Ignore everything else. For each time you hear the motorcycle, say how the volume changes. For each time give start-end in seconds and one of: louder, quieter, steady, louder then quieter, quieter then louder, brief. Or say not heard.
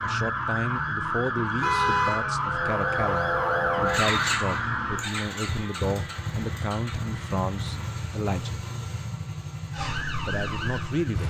2.4-11.2 quieter.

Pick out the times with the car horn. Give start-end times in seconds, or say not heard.
1.6-2.2.